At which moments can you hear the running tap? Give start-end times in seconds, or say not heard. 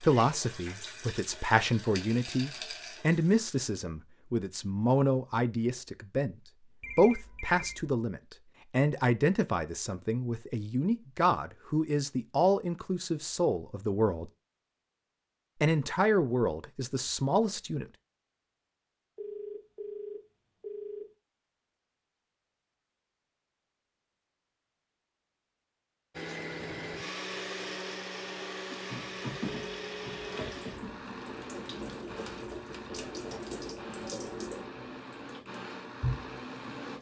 0.0-3.5, 28.9-36.9.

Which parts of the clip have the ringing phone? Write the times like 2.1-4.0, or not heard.
6.8-8.0, 19.1-21.1, 29.5-30.4.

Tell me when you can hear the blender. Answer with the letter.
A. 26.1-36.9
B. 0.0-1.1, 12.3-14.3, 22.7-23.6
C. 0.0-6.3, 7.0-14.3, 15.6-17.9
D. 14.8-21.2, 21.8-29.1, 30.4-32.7
A.